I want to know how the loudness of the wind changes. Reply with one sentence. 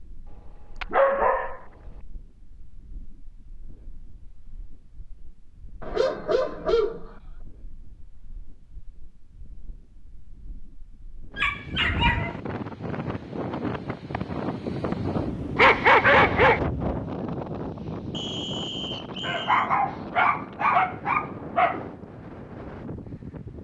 The loudness of the wind goes up, then down.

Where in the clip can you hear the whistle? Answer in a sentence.
You can hear the whistle from 18.1 to 19.7 s.